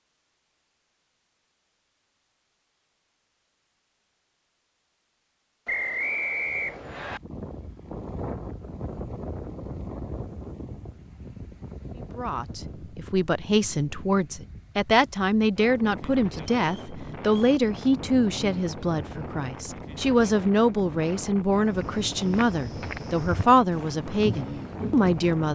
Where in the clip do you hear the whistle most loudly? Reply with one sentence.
The volume of the whistle peaks at 6 seconds.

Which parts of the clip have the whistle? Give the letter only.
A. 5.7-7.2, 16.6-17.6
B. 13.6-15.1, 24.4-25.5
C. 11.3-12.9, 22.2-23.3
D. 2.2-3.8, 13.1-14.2
A.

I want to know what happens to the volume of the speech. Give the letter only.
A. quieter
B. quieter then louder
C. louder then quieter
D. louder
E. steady
E.